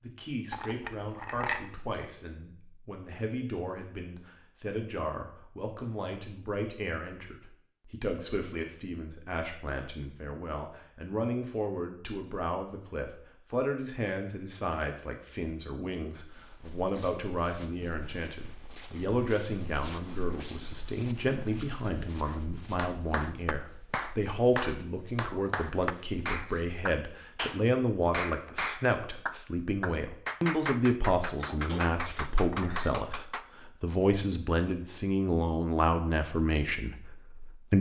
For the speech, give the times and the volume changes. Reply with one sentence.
You can hear the speech from 0.0 to 37.7 s, getting louder.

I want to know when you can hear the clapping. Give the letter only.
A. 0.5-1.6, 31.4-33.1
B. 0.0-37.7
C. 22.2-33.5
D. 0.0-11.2
C.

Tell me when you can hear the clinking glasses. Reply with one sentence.
You can hear the clinking glasses from 0.5 to 1.6 s and from 31.4 to 33.1 s.